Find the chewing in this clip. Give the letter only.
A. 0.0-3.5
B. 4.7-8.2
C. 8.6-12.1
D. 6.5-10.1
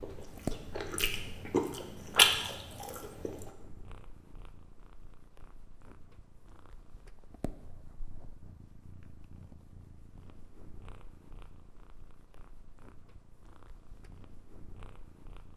A.